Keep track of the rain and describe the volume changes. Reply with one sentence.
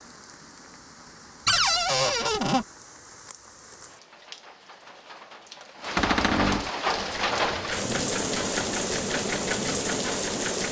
The loudness of the rain goes up.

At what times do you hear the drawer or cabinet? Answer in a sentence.
You can hear the drawer or cabinet from 1.4 to 2.6 s and from 6.0 to 6.7 s.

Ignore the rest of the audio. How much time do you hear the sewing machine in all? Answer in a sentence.
You can hear the sewing machine for 4 seconds altogether.